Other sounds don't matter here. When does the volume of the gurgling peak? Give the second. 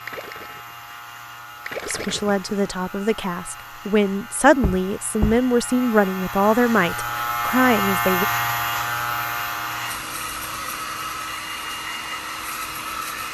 2 s.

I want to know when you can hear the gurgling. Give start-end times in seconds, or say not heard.
0.0-0.8, 1.6-2.5.